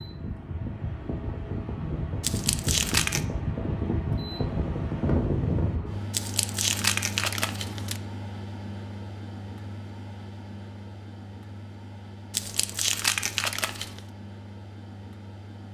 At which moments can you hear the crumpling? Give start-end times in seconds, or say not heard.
2.2-3.2, 6.1-8.0, 12.3-14.0.